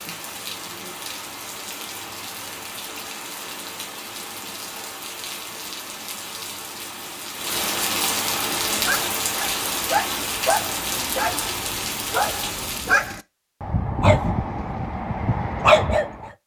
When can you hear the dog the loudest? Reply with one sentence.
The loudest moment of the dog is at 16 seconds.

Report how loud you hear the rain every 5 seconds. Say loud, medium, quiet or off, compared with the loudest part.
medium, loud, loud, off.